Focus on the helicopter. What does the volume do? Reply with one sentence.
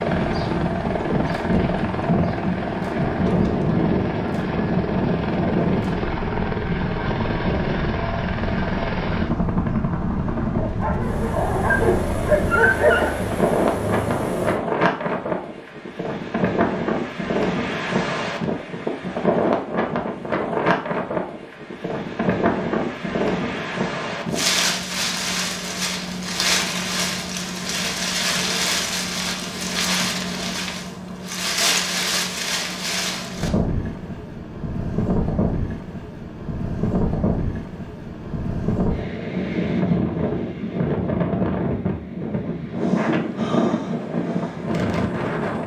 The volume of the helicopter stays about the same.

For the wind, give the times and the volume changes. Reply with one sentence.
You can hear the wind from 0.0 to 45.6 s, at a steady volume.